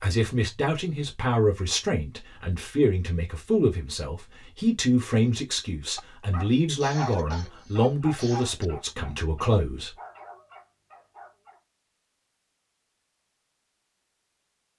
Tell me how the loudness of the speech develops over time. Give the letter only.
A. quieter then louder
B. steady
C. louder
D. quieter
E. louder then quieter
B.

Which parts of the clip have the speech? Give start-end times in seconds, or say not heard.
0.0-9.9.